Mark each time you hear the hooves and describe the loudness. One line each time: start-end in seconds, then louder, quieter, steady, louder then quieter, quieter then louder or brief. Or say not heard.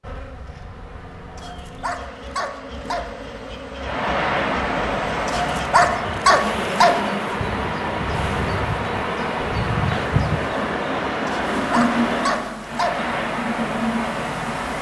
not heard.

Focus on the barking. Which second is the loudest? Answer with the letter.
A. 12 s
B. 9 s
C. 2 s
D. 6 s
D.